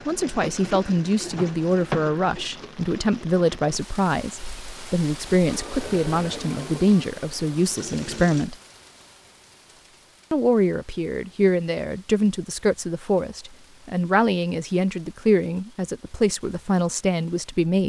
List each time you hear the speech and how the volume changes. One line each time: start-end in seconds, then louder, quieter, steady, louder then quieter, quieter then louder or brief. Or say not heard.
0.1-8.6 steady
10.3-17.8 steady.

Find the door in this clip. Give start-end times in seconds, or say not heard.
1.3-2.4.